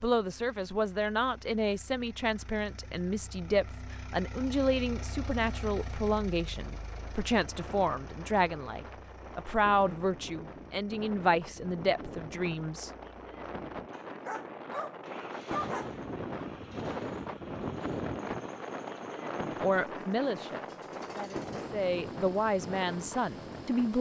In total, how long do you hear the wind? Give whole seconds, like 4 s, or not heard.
17 s.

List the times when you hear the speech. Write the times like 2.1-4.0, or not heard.
0.0-12.9, 19.4-23.9.